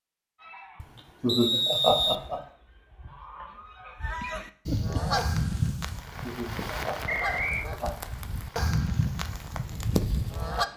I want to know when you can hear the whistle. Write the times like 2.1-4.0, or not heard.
1.2-2.2, 7.0-7.7.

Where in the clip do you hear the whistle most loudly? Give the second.
2 s.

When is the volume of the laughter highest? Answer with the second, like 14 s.
2 s.